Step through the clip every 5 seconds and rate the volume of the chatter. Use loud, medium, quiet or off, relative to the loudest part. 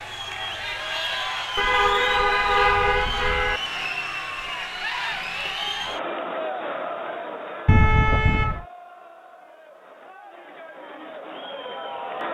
loud, loud, medium.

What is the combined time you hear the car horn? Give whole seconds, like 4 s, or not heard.
3 s.